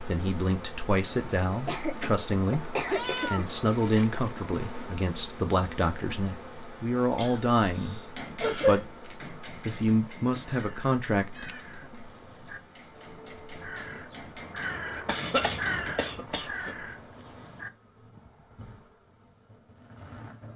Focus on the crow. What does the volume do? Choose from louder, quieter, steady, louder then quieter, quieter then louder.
louder then quieter.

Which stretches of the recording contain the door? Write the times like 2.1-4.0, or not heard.
not heard.